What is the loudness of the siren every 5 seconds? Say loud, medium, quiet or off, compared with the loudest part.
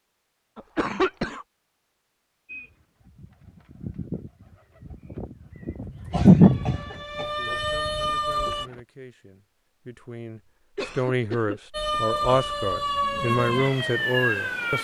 off, loud, loud.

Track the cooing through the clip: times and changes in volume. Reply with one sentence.
You can hear the cooing from 2.5 to 8.8 s, getting louder then quieter.